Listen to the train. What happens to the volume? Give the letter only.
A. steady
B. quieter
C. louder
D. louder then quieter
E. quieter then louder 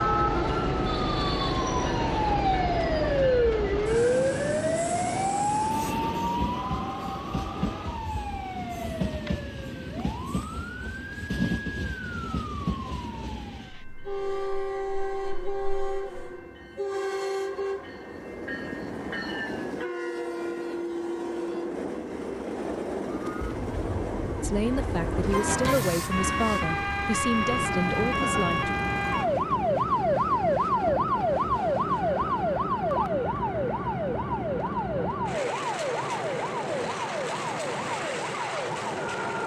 A.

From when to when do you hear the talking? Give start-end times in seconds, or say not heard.
24.4-28.7.